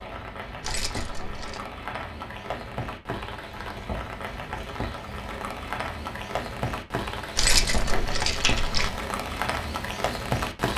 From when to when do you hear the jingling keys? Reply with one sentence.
You can hear the jingling keys from 0.6 to 1.6 s and from 7.3 to 8.9 s.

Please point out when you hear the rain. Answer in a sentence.
The rain can be heard from 0.0 to 10.7 s.